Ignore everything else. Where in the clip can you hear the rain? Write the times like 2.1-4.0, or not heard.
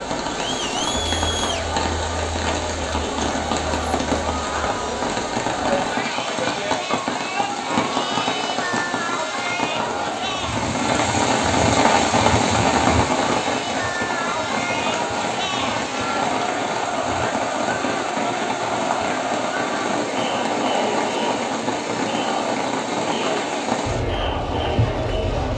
0.0-25.5.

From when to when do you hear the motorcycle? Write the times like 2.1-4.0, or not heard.
not heard.